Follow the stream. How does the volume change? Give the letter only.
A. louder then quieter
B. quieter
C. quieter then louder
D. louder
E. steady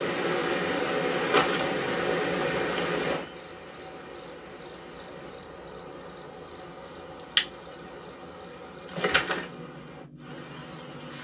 B.